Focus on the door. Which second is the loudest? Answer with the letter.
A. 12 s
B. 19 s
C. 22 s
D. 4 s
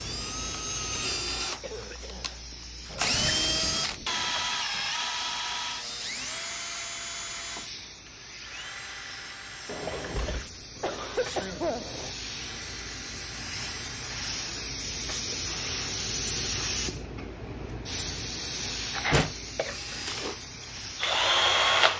B.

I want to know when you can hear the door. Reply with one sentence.
You can hear the door from 2.9 to 4.5 s, from 9.7 to 12.1 s and from 18.7 to 19.4 s.